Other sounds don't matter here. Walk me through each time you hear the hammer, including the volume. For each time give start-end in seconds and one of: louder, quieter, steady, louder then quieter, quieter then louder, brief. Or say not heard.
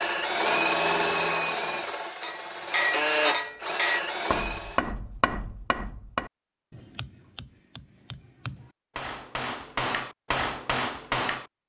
2.2-11.4 quieter then louder.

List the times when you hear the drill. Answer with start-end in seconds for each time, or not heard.
0.0-5.0.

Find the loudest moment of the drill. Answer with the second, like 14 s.
1 s.